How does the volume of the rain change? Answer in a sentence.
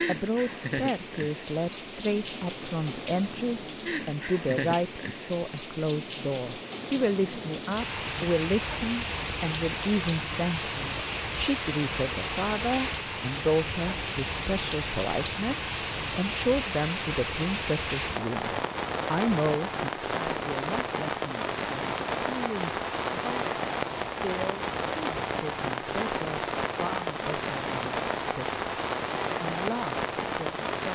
The volume of the rain stays about the same.